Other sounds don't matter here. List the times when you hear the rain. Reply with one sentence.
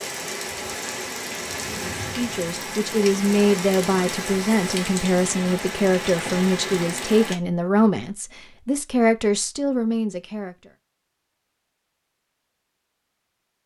You can hear the rain from 0.0 to 7.4 s.